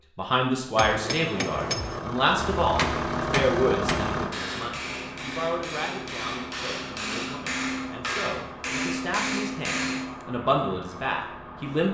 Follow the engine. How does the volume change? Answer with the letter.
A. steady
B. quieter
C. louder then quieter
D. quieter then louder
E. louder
B.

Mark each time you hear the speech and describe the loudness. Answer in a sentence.
The speech can be heard from 0.1 to 11.8 s, getting quieter then louder.